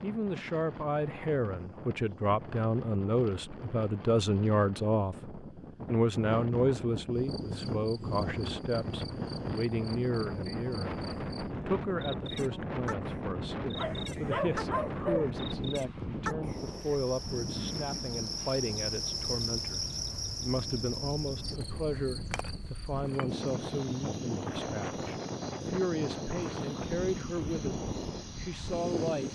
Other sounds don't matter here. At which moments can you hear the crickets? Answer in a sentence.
The crickets can be heard from 7.2 to 29.3 s.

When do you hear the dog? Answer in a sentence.
You can hear the dog from 13.8 to 15.3 s.